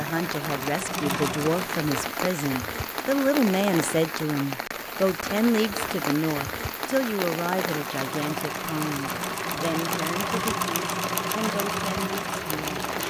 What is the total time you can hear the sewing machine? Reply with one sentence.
The sewing machine can be heard for 7 seconds in total.